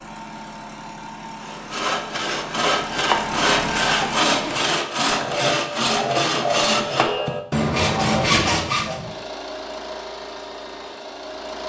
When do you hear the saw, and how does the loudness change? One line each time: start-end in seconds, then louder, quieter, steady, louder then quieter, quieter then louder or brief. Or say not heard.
1.4-9.0 steady.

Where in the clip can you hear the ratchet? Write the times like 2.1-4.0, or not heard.
not heard.